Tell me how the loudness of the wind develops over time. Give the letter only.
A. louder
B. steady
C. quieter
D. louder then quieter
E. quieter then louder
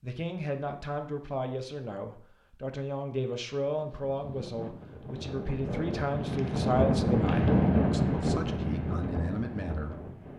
D.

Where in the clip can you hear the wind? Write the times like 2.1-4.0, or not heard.
3.6-10.3.